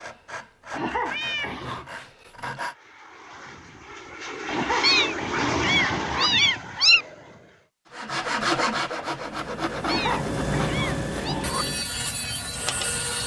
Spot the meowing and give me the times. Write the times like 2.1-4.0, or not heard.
1.1-1.6, 4.8-7.0, 9.8-11.3.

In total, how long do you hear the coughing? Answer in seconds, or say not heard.
5 s.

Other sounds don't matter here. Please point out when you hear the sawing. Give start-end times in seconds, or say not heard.
0.0-2.8, 7.9-13.2.